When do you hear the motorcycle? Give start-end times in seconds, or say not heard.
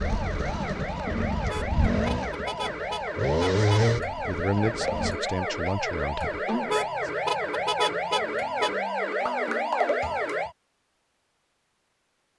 0.0-5.2.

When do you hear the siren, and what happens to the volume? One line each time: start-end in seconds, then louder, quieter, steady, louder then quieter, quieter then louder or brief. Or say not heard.
0.0-10.6 louder.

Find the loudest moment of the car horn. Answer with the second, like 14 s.
8 s.